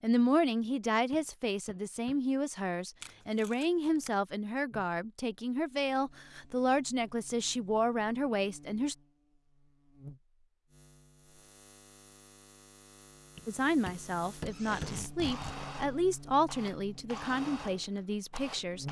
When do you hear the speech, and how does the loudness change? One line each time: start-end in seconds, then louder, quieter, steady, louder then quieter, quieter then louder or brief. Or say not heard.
0.0-8.9 steady
13.4-18.8 louder then quieter.